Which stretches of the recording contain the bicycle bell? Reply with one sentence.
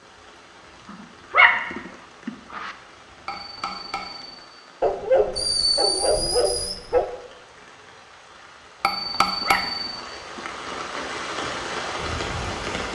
The bicycle bell can be heard from 3.2 to 4.5 s and from 8.8 to 10.0 s.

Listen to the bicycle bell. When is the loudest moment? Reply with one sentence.
The loudest moment of the bicycle bell is at 9 seconds.